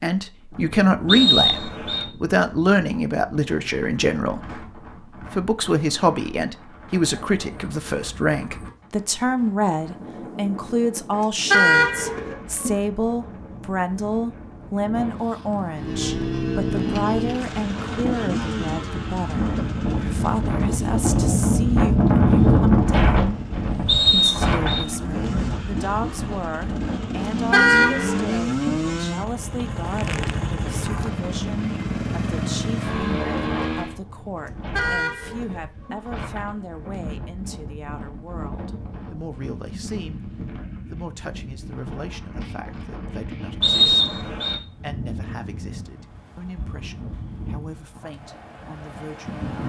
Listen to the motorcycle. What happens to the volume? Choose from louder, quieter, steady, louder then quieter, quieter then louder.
quieter then louder.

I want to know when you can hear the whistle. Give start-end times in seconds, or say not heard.
1.1-2.0, 23.9-24.9, 43.6-44.5.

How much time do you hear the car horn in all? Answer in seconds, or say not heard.
5 s.